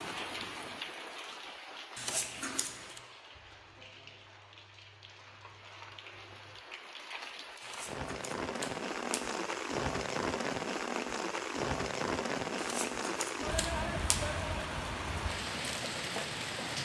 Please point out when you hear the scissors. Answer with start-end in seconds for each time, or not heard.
1.9-3.0, 7.6-9.2, 12.6-14.2.